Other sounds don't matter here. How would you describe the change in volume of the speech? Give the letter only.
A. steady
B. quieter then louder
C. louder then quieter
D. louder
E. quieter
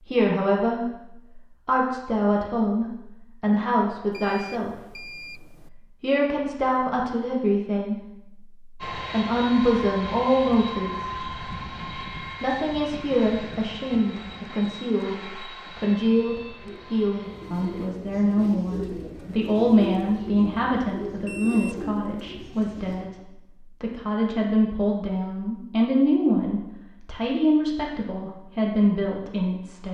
A.